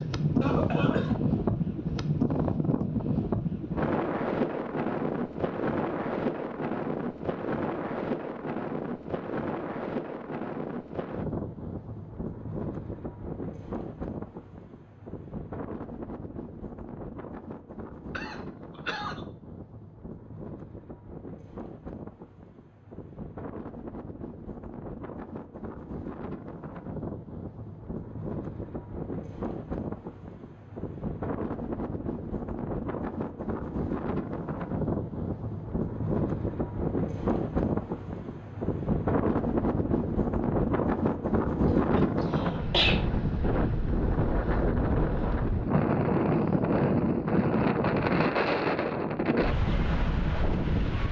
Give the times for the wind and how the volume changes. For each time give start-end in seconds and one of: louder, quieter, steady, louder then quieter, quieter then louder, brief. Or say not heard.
0.0-51.0 quieter then louder.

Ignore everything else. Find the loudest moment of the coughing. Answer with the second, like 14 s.
43 s.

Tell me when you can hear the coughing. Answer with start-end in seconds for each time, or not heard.
0.4-1.1, 18.1-19.2, 41.6-43.0.